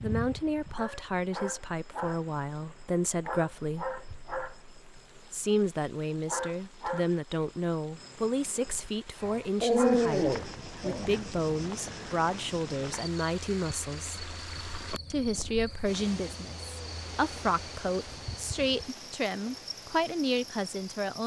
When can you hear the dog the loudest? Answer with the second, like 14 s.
10 s.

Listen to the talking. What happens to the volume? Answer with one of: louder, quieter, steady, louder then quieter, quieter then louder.
steady.